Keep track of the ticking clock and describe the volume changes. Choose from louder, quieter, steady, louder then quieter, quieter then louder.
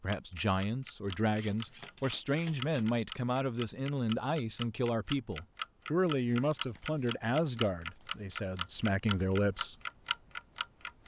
steady.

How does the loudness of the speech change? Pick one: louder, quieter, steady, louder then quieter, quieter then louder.
steady.